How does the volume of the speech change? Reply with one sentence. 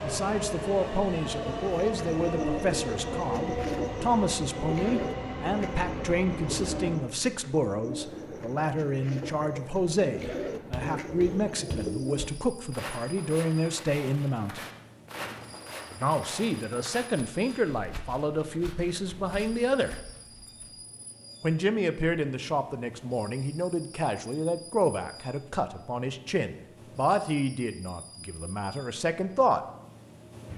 The loudness of the speech stays about the same.